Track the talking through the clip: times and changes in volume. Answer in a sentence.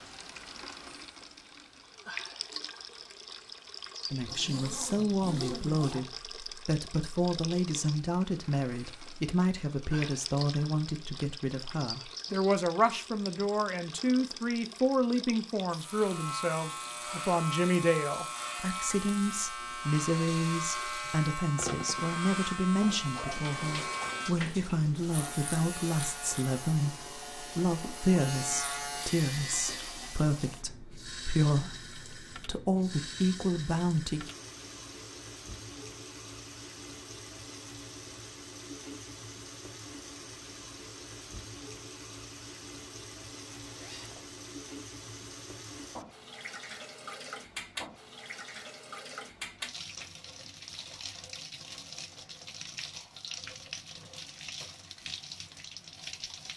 You can hear the talking from 4.1 to 34.3 s, at a steady volume.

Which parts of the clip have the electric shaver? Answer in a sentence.
You can hear the electric shaver from 15.8 to 30.2 s.